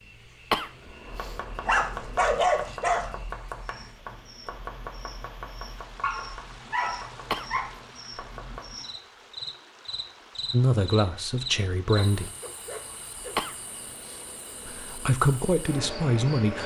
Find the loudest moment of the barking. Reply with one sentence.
The loudest moment of the barking is at 2 seconds.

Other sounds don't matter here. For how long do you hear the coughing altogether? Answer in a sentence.
The coughing can be heard for 4 seconds in total.